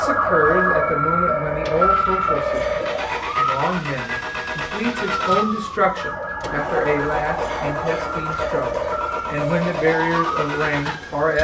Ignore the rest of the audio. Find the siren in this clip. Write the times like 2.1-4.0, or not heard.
0.0-11.2.